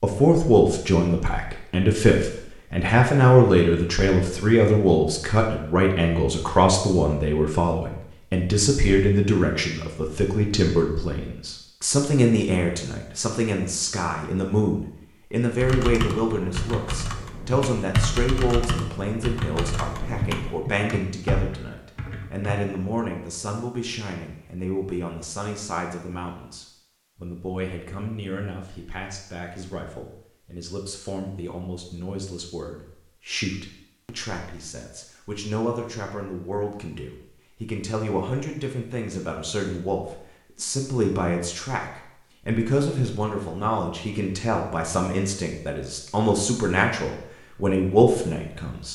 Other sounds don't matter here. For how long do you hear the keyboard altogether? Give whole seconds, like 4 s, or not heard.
7 s.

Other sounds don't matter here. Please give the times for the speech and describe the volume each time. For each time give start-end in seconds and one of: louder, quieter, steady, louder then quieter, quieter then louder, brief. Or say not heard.
0.0-48.9 quieter then louder.